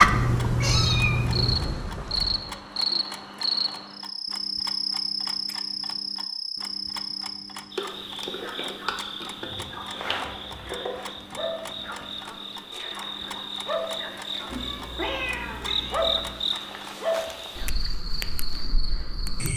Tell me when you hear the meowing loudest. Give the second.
1 s.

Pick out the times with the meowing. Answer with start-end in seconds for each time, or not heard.
0.1-1.6, 14.4-16.4.